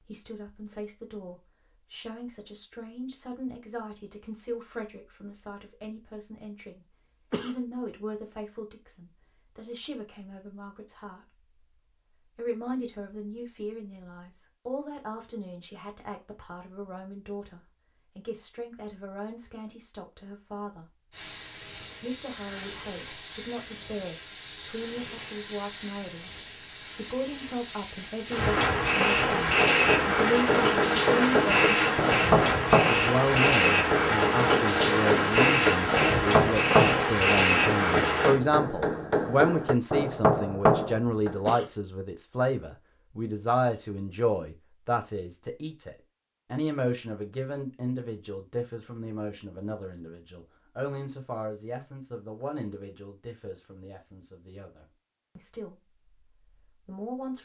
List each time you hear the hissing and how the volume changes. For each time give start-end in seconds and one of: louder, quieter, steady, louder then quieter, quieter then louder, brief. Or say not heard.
21.1-38.4 louder.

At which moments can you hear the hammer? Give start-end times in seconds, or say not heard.
29.4-41.4.